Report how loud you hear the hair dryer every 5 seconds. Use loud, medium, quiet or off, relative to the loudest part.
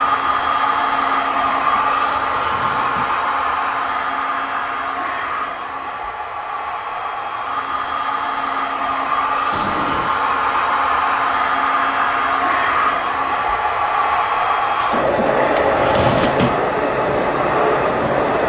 loud, medium, loud, loud.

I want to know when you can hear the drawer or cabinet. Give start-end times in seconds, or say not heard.
1.4-3.1, 9.5-10.2, 14.8-16.6.